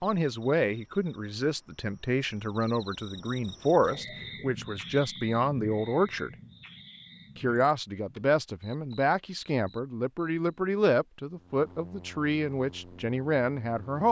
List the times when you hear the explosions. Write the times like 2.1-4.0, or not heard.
not heard.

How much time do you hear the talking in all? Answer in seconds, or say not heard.
13 s.